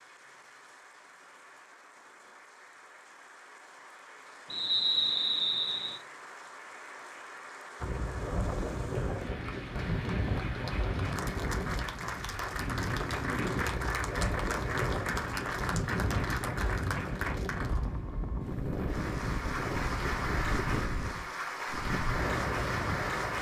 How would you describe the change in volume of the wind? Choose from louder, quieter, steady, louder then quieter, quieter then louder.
steady.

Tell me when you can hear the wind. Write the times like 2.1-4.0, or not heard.
7.8-23.3.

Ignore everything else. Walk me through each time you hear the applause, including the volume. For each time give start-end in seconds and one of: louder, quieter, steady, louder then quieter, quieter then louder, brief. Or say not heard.
0.0-23.3 louder.